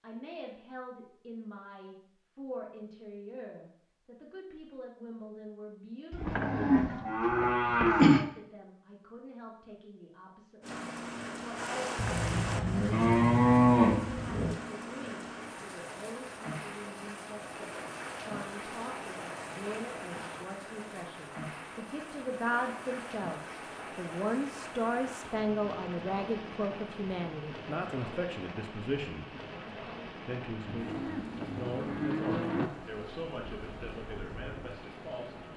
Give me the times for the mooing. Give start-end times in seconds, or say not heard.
6.1-8.2, 11.9-14.6, 30.6-32.7.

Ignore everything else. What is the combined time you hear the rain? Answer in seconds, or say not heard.
25 s.